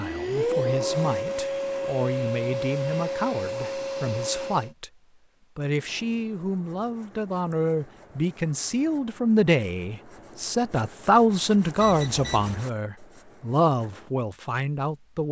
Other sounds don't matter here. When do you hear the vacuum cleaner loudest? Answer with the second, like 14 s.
1 s.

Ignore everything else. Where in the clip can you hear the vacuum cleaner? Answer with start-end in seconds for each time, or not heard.
0.0-4.7.